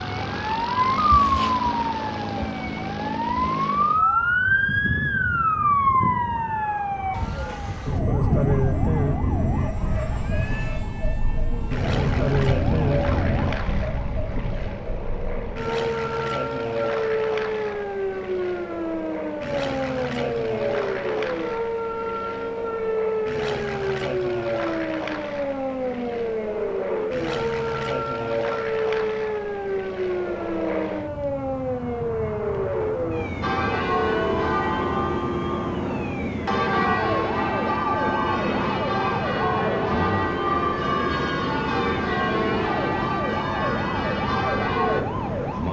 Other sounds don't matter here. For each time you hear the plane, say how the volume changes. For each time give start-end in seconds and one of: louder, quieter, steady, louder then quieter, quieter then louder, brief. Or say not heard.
0.0-45.6 steady.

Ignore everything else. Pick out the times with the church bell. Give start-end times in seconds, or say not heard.
33.4-45.0.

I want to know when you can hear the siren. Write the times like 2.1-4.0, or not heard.
0.0-45.6.